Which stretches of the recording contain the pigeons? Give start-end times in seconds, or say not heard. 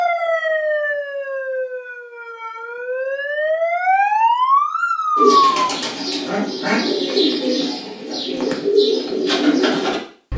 5.2-10.3.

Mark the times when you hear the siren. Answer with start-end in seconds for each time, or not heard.
0.0-5.5.